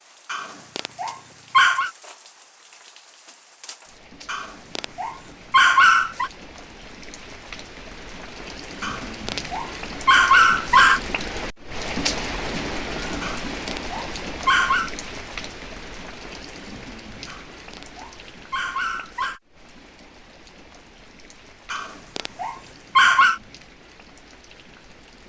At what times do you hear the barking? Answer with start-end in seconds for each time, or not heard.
0.3-1.9, 4.2-6.3, 8.8-11.0, 13.2-14.9, 17.2-19.4, 21.7-23.4.